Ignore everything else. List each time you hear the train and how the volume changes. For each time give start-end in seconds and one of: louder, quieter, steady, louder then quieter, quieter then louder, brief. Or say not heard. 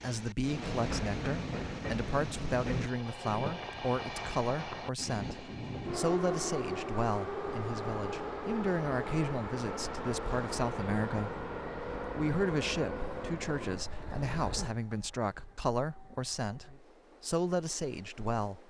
0.0-18.6 quieter.